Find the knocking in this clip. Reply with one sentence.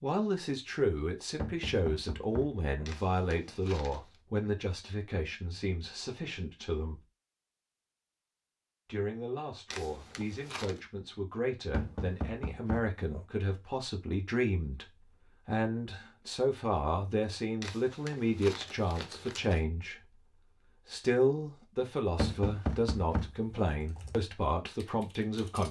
You can hear the knocking from 1.4 to 2.9 s, from 11.7 to 13.2 s and from 22.1 to 23.7 s.